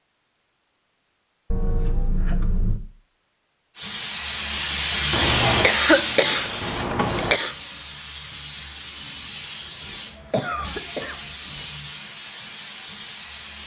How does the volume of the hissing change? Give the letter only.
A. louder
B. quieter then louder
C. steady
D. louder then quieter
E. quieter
E.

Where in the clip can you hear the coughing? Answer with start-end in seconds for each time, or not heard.
1.5-2.8, 5.1-7.5, 10.3-11.2.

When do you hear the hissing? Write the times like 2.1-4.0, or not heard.
3.8-13.6.